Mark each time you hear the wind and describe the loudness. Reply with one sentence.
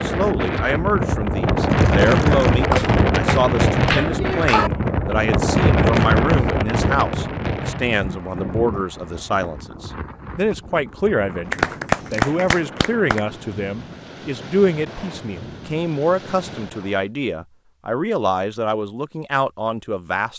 You can hear the wind from 0.0 to 17.1 s, getting quieter.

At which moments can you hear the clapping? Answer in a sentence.
You can hear the clapping from 2.7 to 4.7 s and from 11.5 to 13.2 s.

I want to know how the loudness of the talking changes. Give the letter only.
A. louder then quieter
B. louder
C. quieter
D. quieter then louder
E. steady
E.